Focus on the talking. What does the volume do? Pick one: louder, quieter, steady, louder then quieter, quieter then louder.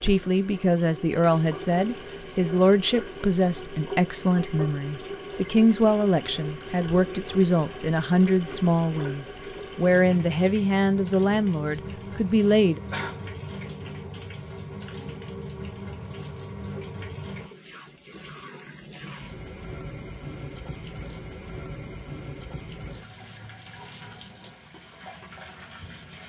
steady.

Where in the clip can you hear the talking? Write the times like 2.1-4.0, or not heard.
0.0-12.8.